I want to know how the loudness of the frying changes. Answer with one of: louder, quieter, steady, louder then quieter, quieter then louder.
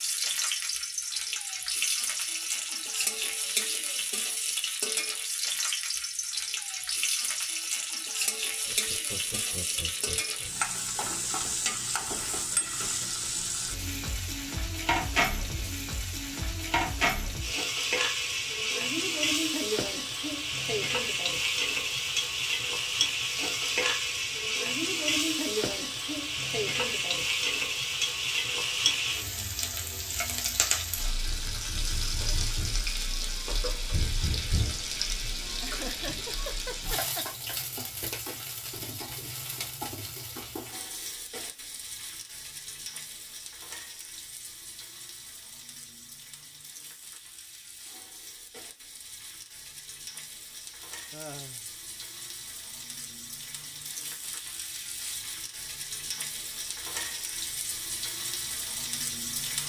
quieter.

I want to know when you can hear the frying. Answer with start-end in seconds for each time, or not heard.
0.0-59.6.